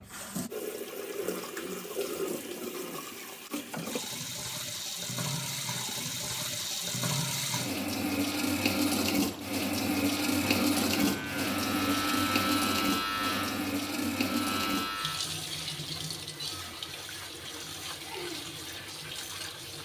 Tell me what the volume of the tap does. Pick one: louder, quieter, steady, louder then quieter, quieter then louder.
louder then quieter.